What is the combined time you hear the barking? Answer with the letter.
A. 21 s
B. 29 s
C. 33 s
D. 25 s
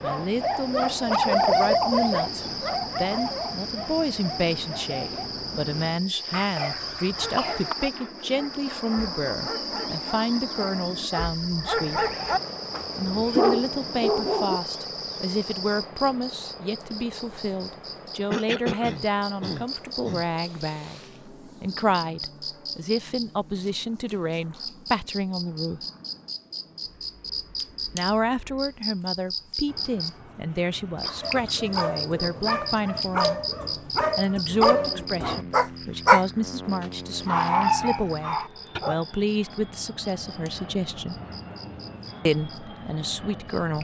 A.